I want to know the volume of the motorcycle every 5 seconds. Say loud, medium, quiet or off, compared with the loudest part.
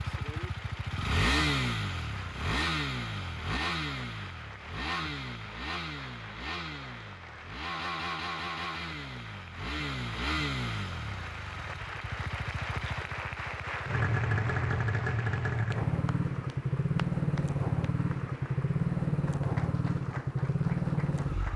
loud, medium, medium, loud, loud.